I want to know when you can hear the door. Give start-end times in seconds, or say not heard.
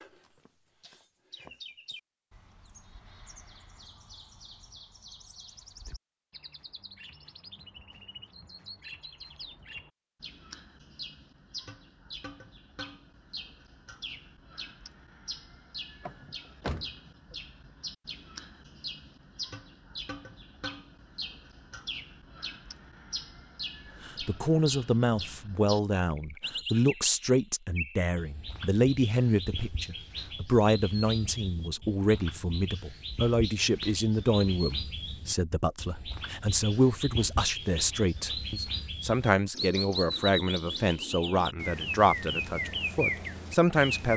16.0-17.4.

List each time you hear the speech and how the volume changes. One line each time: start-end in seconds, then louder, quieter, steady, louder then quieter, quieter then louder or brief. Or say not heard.
24.1-44.1 steady.